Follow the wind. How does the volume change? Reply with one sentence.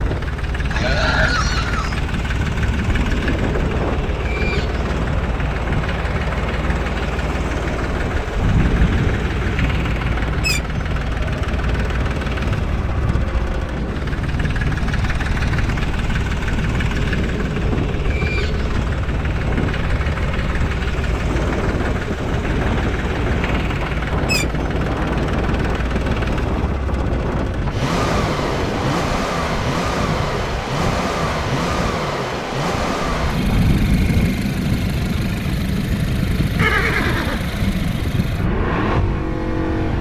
The loudness of the wind stays about the same.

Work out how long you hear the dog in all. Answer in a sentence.
You can't hear the dog here.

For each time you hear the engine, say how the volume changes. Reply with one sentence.
You can hear the engine from 0.0 to 39.9 s, at a steady volume.